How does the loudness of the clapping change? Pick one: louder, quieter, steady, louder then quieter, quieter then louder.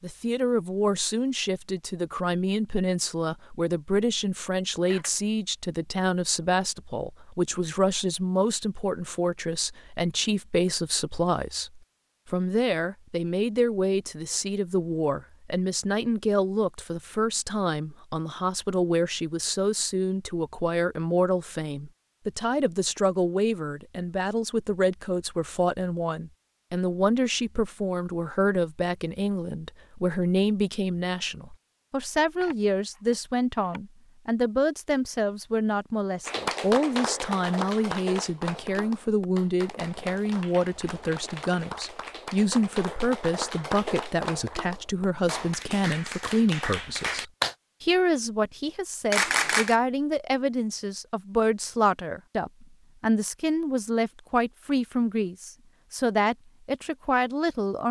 quieter then louder.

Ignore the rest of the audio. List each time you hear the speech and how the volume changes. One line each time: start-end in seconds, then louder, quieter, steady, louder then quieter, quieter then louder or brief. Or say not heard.
0.0-57.8 steady.